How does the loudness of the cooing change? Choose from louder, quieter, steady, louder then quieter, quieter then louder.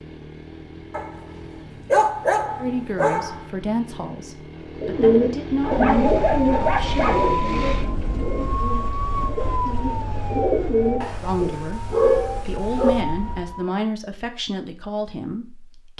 quieter then louder.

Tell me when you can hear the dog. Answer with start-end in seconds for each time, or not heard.
0.9-3.4, 5.6-7.3, 11.0-12.9.